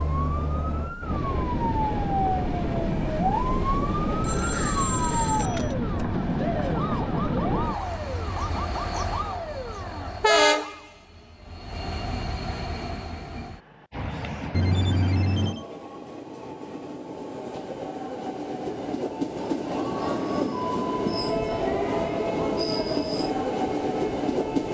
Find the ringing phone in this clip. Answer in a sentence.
You can hear the ringing phone from 4.0 to 5.8 s and from 14.5 to 15.7 s.